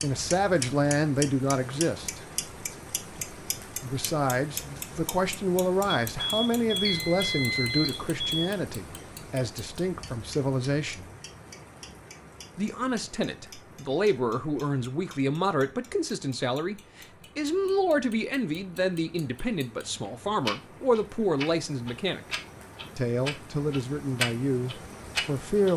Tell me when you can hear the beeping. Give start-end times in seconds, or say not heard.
6.1-8.5.